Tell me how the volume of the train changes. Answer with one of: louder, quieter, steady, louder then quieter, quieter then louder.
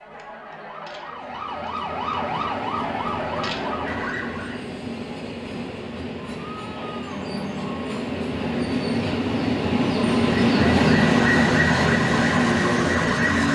louder.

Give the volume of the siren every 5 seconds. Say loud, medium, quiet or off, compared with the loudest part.
medium, off, loud.